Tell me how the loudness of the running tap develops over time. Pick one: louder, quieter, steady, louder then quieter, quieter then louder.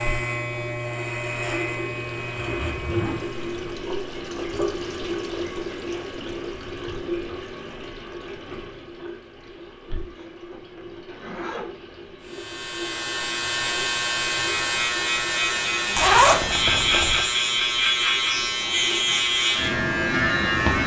quieter.